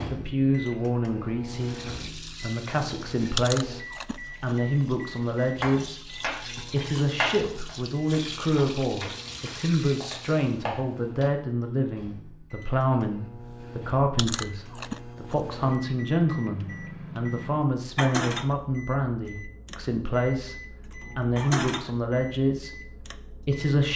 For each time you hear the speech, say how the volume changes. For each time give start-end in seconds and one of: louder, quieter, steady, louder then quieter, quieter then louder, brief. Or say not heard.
0.1-23.9 steady.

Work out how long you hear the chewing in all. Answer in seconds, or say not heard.
3 s.